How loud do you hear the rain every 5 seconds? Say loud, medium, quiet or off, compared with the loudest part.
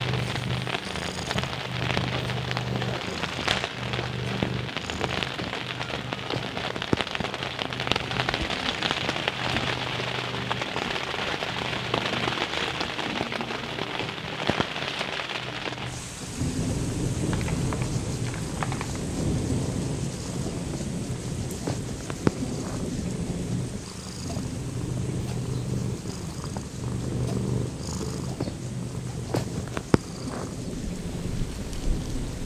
loud, loud, loud, loud, loud, medium, medium.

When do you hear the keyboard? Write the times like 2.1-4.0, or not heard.
not heard.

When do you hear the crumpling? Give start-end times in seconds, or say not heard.
2.1-4.1, 17.3-19.0.